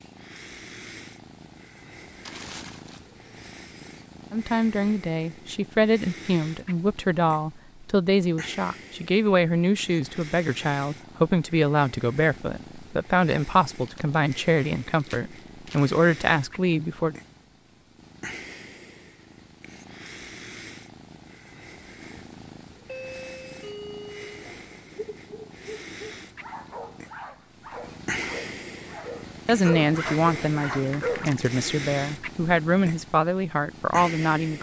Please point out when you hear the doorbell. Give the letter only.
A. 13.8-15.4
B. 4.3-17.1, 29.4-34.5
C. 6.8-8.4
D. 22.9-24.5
D.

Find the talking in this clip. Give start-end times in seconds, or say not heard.
4.3-17.1, 29.4-34.5.